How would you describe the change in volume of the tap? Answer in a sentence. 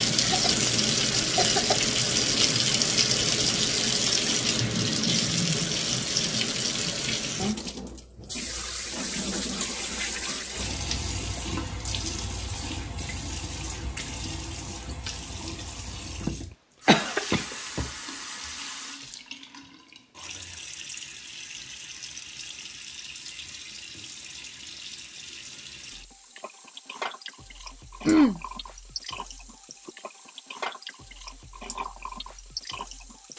The volume of the tap goes down.